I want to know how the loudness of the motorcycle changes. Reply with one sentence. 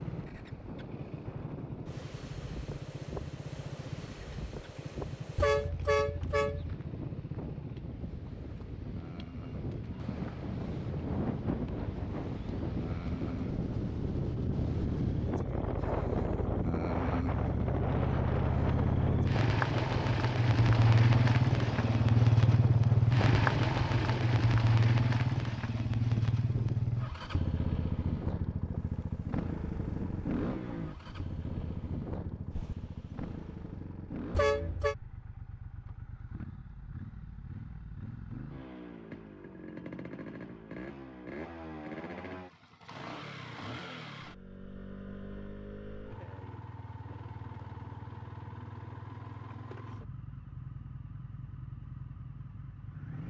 The volume of the motorcycle goes up, then down.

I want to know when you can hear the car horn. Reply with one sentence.
You can hear the car horn from 5.3 to 6.8 s and from 34.3 to 35.0 s.